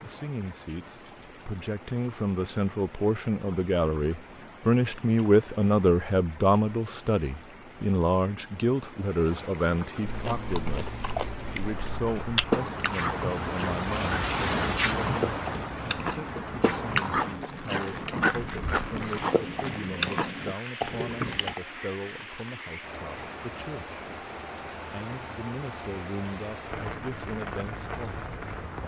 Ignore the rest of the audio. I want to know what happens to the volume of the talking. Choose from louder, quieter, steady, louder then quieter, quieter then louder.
quieter.